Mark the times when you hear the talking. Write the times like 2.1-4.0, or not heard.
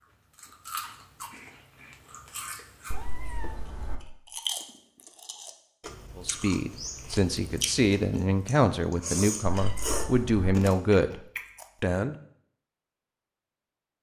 6.2-12.2.